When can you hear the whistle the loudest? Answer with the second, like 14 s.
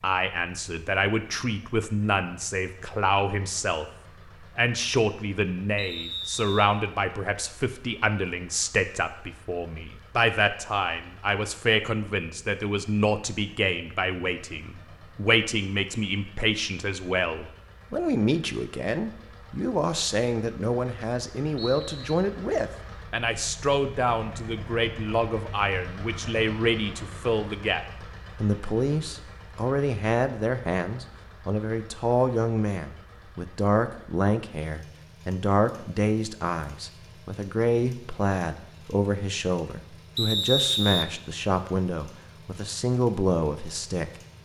41 s.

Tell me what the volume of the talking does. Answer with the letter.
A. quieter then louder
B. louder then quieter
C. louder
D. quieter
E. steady
E.